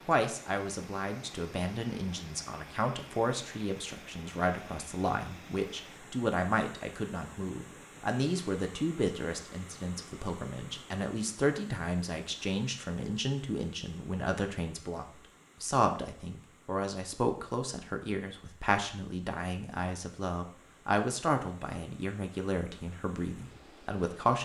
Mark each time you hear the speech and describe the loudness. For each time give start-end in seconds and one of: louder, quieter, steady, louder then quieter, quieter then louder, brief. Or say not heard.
0.1-24.4 steady.